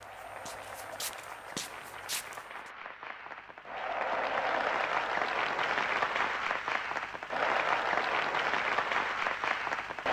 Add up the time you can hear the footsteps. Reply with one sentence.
You can hear the footsteps for 3 seconds altogether.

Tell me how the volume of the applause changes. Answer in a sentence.
The volume of the applause goes up.